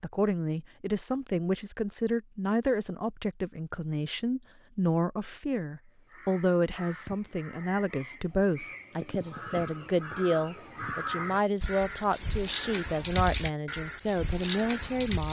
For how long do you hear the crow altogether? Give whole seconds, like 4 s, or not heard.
9 s.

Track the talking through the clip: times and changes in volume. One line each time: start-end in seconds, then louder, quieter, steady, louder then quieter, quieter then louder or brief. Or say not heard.
0.0-15.2 steady.